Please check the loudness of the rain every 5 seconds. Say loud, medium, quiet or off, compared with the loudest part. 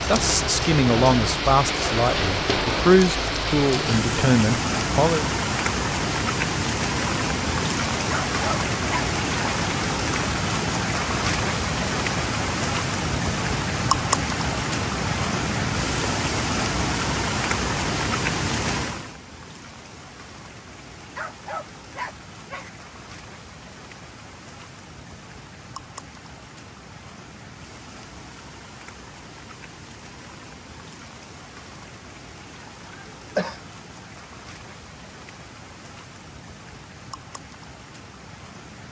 loud, loud, loud, loud, quiet, quiet, quiet, quiet.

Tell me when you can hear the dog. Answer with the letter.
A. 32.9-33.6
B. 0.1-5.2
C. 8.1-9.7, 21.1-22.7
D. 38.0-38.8
C.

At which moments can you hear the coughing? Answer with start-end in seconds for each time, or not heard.
32.9-33.6.